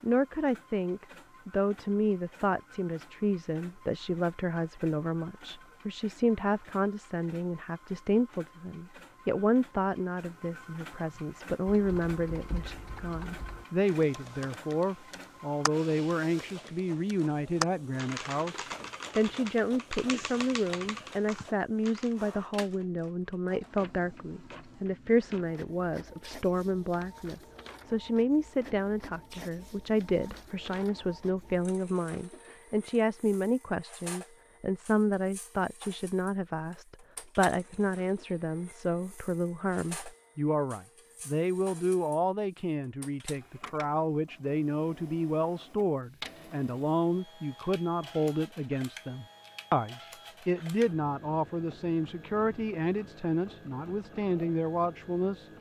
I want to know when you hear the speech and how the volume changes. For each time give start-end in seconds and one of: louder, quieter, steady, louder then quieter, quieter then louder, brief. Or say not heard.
0.0-55.5 steady.